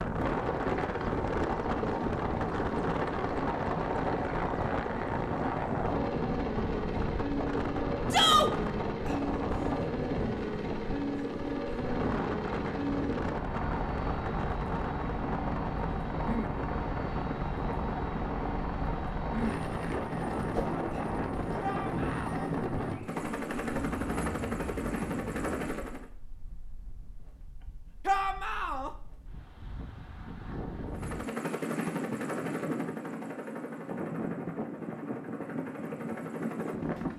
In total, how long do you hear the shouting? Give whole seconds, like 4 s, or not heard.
2 s.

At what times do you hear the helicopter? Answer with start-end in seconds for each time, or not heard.
0.0-26.1, 30.9-37.1.